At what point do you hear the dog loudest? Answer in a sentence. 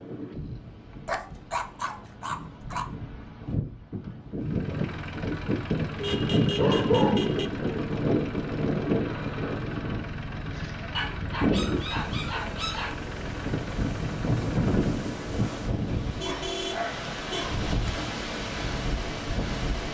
The volume of the dog peaks at 7 seconds.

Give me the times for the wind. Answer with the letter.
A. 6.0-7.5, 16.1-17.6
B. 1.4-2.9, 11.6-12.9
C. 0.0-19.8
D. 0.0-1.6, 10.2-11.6
C.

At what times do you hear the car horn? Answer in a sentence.
You can hear the car horn from 6.0 to 7.5 s and from 16.1 to 17.6 s.